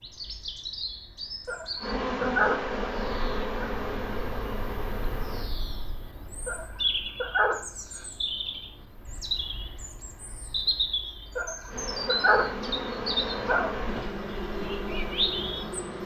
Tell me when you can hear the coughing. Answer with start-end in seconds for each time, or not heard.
not heard.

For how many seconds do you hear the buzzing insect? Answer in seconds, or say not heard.
8 s.